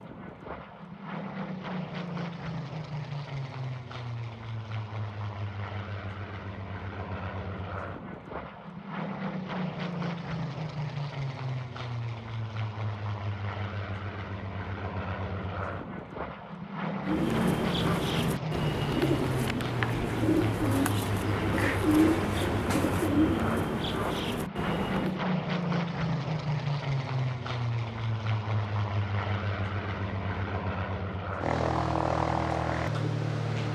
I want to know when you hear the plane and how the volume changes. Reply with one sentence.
The plane can be heard from 0.0 to 33.7 s, getting louder.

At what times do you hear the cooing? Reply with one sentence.
You can hear the cooing from 17.1 to 25.2 s.